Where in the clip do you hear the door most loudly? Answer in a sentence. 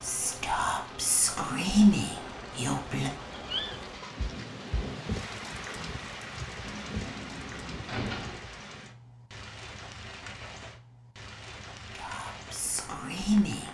The volume of the door peaks at 8 seconds.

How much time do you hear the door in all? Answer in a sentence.
The door can be heard for 2 seconds in total.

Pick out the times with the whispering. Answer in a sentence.
The whispering can be heard from 0.0 to 3.1 s and from 11.9 to 13.7 s.